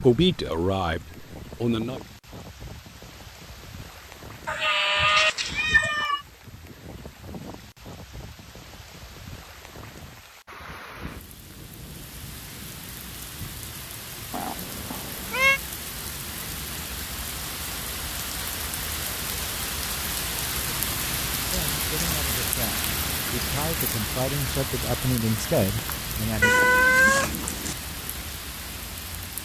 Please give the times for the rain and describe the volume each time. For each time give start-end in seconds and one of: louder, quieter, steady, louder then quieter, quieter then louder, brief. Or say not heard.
0.0-29.4 louder.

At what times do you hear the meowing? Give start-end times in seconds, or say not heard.
4.5-6.2, 14.3-15.6, 26.4-27.8.